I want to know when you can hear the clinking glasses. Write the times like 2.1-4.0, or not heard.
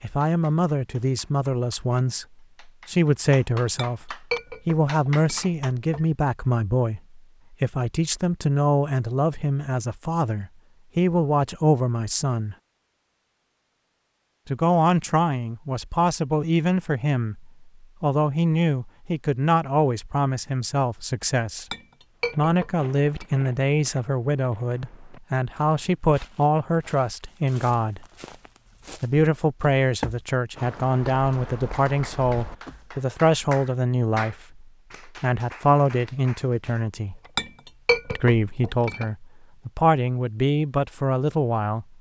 3.6-6.0, 21.7-23.2, 37.4-39.0.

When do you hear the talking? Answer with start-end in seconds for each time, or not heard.
0.0-12.6, 14.4-21.6, 22.4-28.1, 29.0-37.2, 38.1-41.9.